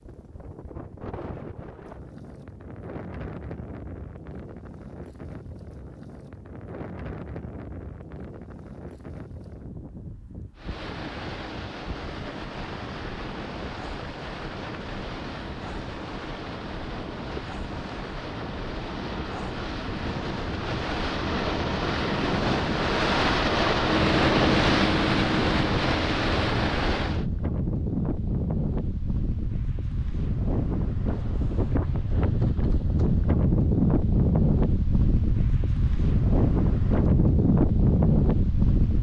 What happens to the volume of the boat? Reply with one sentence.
The loudness of the boat goes up.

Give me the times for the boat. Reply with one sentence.
The boat can be heard from 10.6 to 27.2 s.